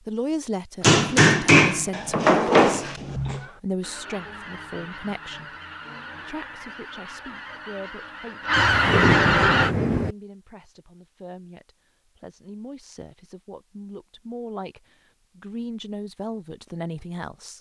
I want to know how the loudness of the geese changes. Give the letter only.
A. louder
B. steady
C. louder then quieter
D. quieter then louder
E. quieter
A.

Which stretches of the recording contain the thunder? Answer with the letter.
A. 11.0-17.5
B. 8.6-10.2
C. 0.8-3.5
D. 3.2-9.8
B.